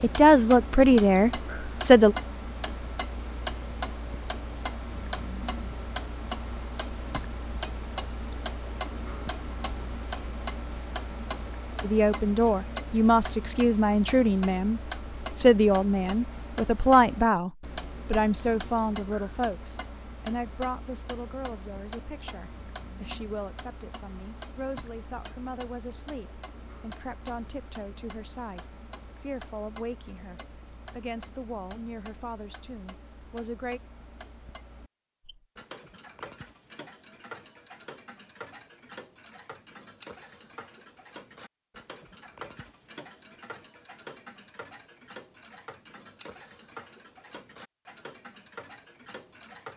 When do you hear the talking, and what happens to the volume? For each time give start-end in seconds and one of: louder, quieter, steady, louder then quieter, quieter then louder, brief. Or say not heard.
0.0-2.1 brief
11.8-33.8 quieter.